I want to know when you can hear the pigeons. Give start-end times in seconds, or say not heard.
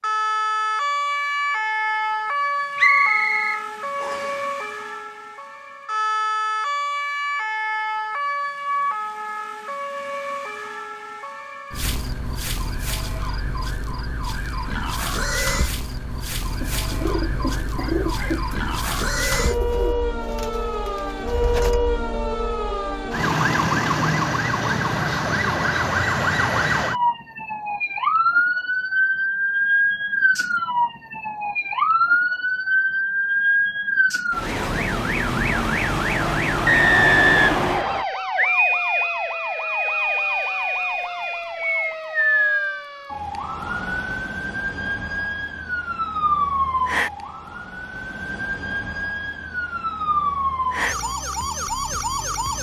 16.4-21.8.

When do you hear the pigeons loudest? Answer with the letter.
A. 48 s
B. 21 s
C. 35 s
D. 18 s
D.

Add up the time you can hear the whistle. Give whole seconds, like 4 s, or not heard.
3 s.